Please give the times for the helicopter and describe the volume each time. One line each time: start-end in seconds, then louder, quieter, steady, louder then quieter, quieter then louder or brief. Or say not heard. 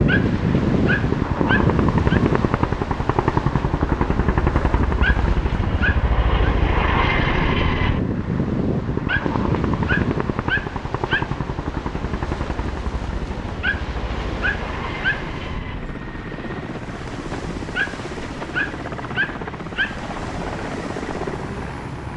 0.0-22.1 quieter.